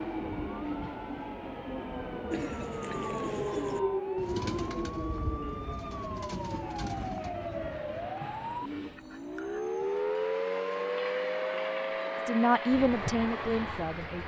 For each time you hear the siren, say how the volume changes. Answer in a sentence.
You can hear the siren from 0.0 to 14.2 s, getting louder.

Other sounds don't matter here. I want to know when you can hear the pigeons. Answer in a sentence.
The pigeons can be heard from 2.3 to 9.6 s.